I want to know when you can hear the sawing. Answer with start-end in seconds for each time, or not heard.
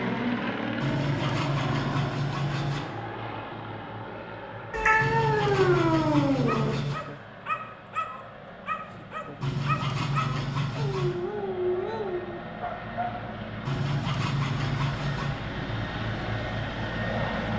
0.8-2.8, 5.0-7.0, 9.4-11.2, 13.7-15.4.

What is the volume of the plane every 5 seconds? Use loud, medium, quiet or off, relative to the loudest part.
loud, quiet, medium, loud.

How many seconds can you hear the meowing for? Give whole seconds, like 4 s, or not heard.
2 s.